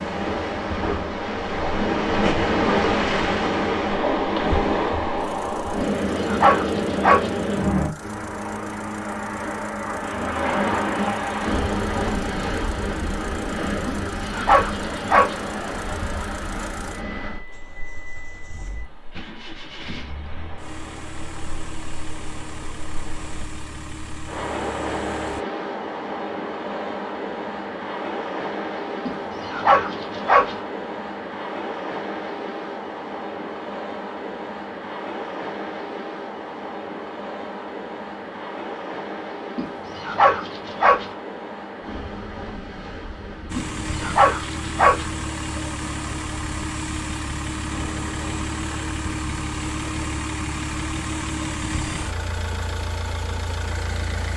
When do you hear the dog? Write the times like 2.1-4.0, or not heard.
5.8-7.3, 13.8-15.3, 29.1-30.6, 39.5-41.0, 43.5-45.0.